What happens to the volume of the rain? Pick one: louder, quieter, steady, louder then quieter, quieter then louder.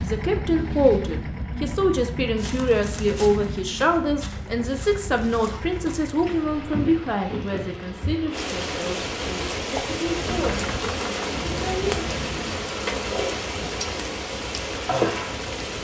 louder.